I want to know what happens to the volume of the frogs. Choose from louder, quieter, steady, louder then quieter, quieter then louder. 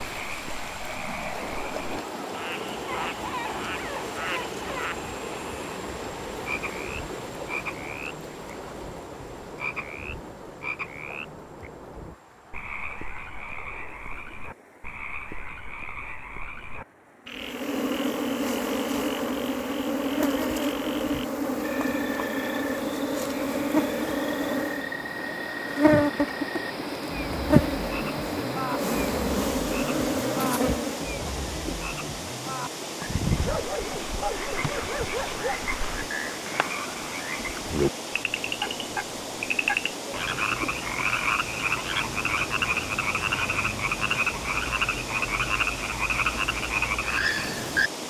louder.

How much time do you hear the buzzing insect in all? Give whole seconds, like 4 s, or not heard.
14 s.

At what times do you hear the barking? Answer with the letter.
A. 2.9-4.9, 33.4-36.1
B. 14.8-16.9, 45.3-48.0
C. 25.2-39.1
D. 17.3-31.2
A.